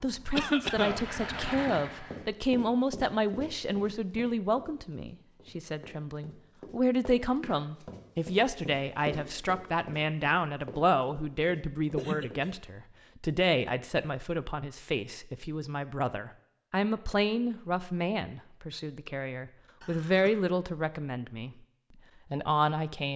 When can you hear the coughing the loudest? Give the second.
1 s.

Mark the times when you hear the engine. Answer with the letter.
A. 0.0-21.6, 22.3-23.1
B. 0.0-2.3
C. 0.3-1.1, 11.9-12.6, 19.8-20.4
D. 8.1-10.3
B.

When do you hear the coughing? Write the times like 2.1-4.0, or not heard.
0.3-1.1, 11.9-12.6, 19.8-20.4.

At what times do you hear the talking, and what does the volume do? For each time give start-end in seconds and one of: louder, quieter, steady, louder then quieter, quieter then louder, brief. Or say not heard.
0.0-21.6 steady
22.3-23.1 brief.